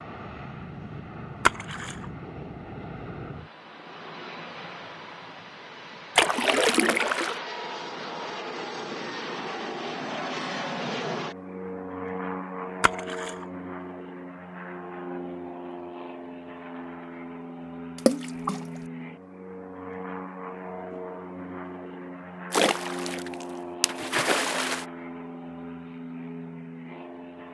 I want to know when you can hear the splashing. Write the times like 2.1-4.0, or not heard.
1.4-2.0, 6.2-7.4, 12.8-13.4, 17.9-18.6, 22.5-24.9.